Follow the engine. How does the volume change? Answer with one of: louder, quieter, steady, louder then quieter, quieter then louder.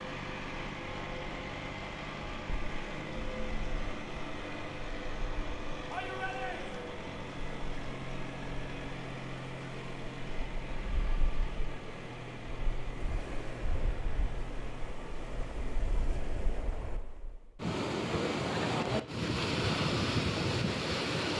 quieter.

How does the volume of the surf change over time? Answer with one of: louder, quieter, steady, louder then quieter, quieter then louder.
louder.